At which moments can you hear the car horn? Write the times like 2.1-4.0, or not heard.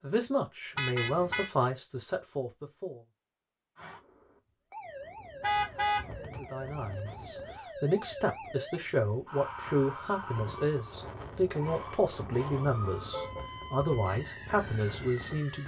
0.8-1.5, 5.4-6.1, 12.5-13.4.